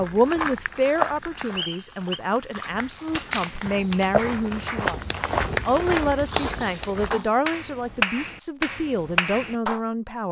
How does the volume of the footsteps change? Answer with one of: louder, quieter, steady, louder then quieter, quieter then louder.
quieter then louder.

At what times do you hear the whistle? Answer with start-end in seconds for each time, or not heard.
1.6-2.2.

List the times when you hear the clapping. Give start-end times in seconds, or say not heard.
2.8-9.8.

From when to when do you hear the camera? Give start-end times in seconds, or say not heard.
3.1-4.2.